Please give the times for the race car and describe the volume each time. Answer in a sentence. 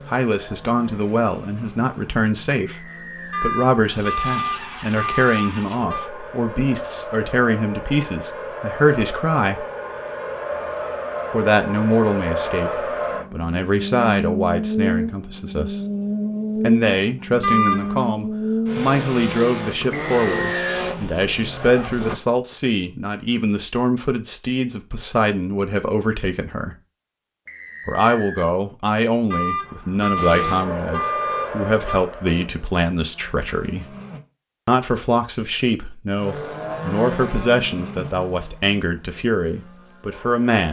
The race car can be heard from 0.0 to 22.1 s, getting louder; from 30.1 to 34.2 s, getting quieter; and from 36.1 to 40.5 s, getting quieter.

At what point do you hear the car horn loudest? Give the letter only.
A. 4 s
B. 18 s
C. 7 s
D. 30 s
B.